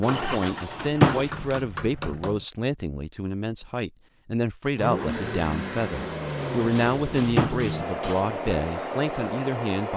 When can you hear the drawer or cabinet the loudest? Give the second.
1 s.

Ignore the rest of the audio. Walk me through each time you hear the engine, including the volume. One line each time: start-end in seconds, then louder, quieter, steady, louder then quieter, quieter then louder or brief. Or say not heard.
0.0-2.2 brief
4.8-9.9 steady.